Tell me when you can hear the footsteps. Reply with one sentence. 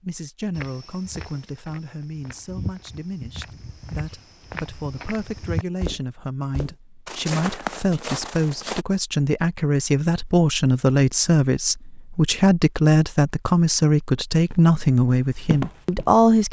You can hear the footsteps from 0.6 to 8.8 s and from 14.4 to 16.2 s.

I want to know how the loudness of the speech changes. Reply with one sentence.
The loudness of the speech goes up.